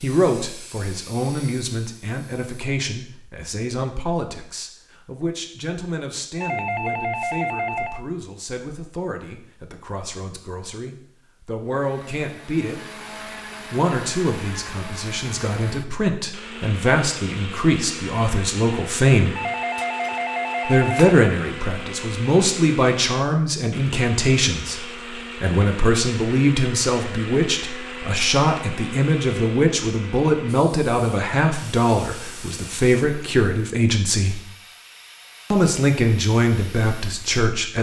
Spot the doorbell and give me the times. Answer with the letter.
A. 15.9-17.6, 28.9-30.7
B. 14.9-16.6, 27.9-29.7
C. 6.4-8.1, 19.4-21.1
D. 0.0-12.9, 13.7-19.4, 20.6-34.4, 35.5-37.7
C.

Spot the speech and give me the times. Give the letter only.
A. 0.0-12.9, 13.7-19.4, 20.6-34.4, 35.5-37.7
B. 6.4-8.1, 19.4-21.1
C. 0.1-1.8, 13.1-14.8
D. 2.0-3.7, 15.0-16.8
A.